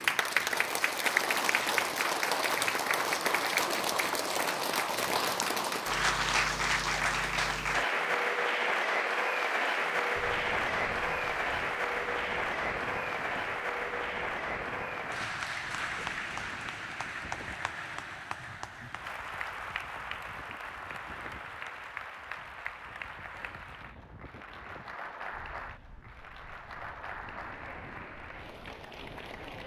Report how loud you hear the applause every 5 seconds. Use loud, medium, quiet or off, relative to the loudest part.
loud, loud, loud, medium, quiet, quiet.